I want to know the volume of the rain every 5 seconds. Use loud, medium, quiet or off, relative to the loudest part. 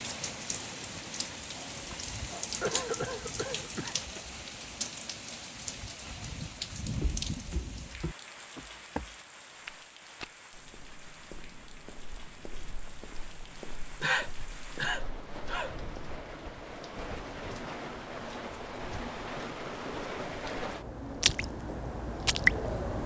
medium, medium, quiet, medium, loud.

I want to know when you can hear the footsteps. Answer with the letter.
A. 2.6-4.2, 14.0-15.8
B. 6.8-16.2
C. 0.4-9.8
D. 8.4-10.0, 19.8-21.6
B.